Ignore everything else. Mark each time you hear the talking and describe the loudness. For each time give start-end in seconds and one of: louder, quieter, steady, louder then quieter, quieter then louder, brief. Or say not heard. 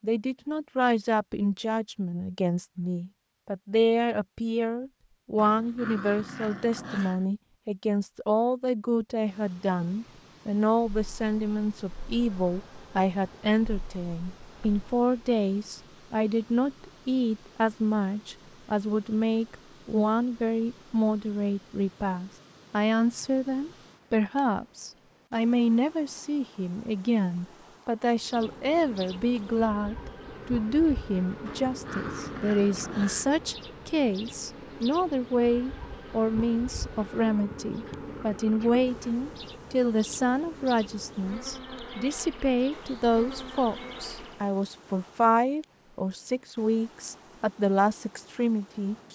0.0-49.1 steady.